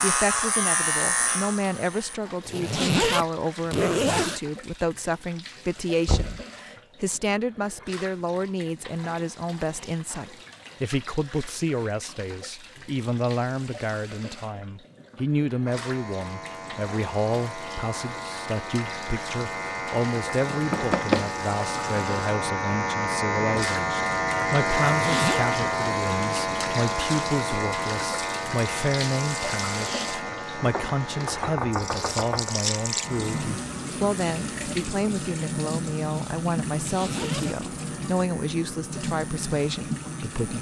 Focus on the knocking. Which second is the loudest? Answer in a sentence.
The loudest moment of the knocking is at 21 seconds.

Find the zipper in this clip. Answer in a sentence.
The zipper can be heard from 2.5 to 4.4 s, from 24.9 to 25.4 s and from 36.8 to 37.5 s.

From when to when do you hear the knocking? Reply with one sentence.
You can hear the knocking from 6.0 to 6.5 s, from 20.5 to 21.3 s and from 30.7 to 32.5 s.